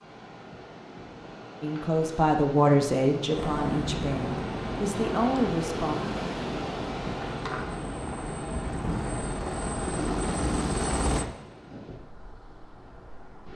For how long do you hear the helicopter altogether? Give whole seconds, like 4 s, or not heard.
8 s.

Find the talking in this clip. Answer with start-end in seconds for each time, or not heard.
1.6-6.0.